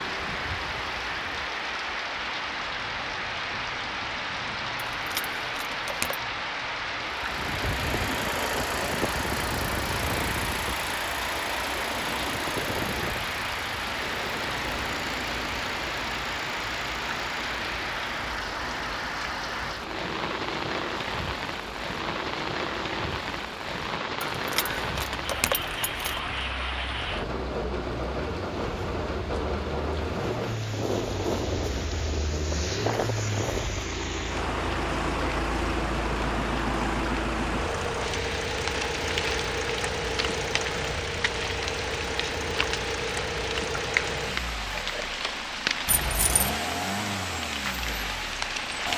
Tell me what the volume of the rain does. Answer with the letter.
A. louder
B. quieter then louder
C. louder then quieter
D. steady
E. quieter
D.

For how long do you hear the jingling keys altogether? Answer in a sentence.
You can hear the jingling keys for 4 seconds altogether.